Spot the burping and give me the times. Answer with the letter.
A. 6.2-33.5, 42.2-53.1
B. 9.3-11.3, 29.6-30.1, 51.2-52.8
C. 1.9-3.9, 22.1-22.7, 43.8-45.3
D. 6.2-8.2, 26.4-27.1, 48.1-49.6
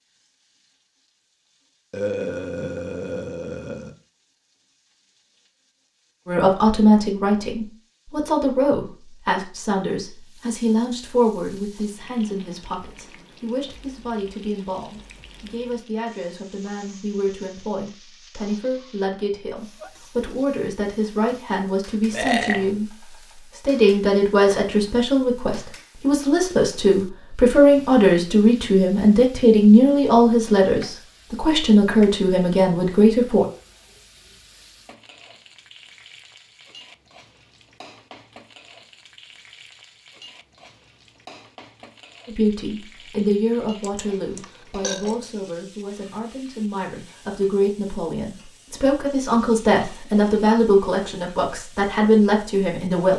C.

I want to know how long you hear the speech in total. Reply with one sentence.
The speech can be heard for 38 seconds in total.